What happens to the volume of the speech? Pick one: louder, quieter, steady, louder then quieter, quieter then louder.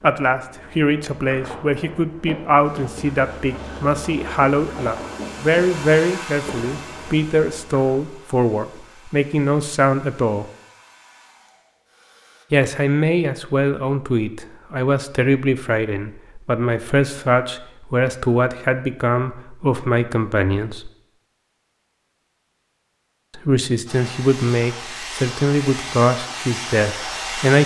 steady.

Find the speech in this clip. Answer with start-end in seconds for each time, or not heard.
0.0-10.4, 12.5-20.9, 23.4-27.6.